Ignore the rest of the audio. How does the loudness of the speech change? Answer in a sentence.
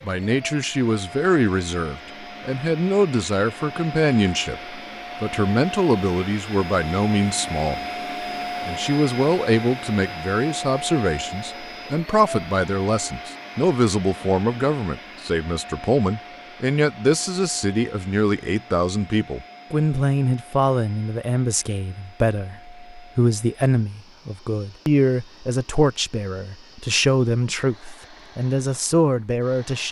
The volume of the speech stays about the same.